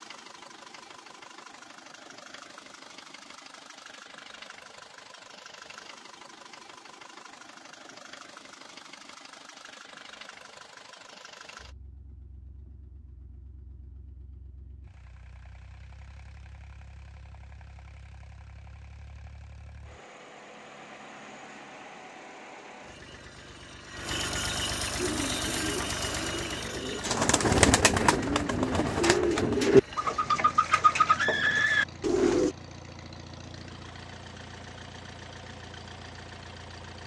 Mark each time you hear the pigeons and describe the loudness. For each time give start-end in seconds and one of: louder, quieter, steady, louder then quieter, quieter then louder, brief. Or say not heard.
24.9-32.5 louder.